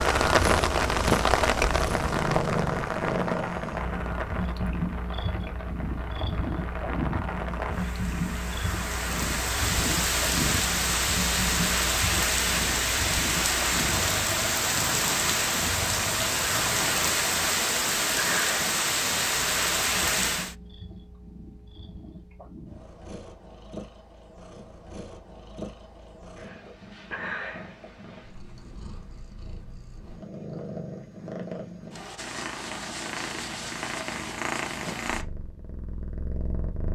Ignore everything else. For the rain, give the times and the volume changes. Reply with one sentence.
You can hear the rain from 0.0 to 20.6 s, getting quieter then louder.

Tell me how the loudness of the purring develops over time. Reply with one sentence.
The volume of the purring goes down, then up.